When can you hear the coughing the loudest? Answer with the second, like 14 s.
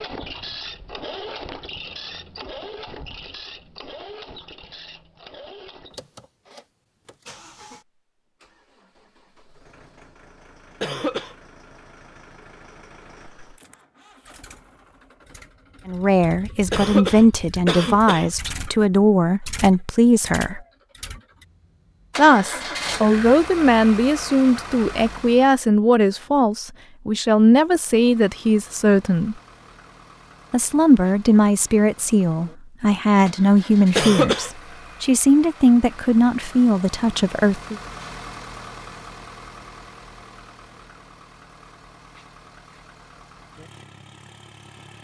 34 s.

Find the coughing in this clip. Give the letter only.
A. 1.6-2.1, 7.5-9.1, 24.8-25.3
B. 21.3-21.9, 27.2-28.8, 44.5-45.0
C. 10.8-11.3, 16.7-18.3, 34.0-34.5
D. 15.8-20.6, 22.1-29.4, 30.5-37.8
C.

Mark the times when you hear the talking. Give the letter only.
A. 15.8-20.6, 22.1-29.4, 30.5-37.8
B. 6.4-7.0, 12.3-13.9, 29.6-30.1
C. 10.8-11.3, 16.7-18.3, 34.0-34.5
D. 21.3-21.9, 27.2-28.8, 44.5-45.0
A.